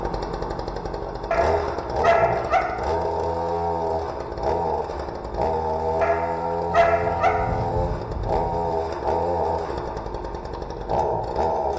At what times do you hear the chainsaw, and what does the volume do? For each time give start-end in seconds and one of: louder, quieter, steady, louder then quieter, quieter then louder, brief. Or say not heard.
0.0-11.7 steady.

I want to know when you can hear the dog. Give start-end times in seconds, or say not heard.
1.3-3.0, 6.0-7.7.